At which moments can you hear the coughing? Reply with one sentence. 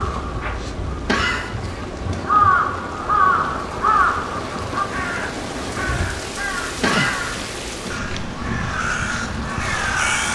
The coughing can be heard from 1.1 to 2.2 s and from 6.8 to 8.0 s.